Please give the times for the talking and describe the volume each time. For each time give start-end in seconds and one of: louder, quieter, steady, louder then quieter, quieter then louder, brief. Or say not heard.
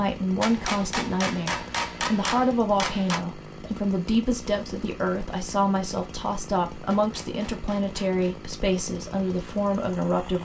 0.0-10.4 steady.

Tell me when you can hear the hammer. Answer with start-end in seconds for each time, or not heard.
0.4-3.2, 6.8-8.3.